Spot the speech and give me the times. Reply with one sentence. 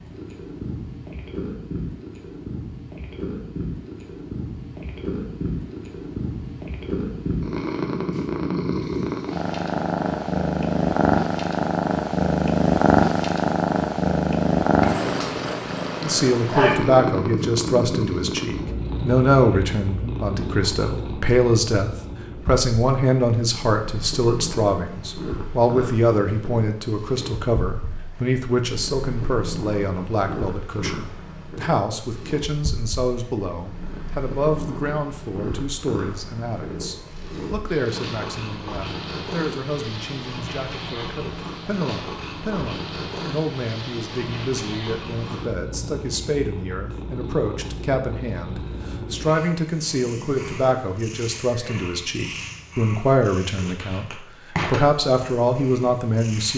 You can hear the speech from 16.0 to 56.5 s.